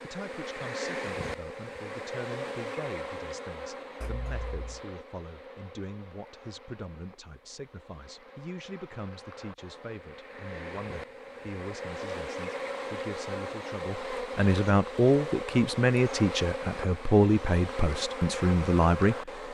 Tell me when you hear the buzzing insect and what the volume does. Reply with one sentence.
The buzzing insect can be heard from 0.0 to 19.4 s, getting quieter then louder.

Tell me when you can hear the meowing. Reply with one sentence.
The meowing can be heard from 4.0 to 4.8 s.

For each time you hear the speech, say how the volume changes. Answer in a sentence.
You can hear the speech from 0.0 to 19.3 s, getting louder.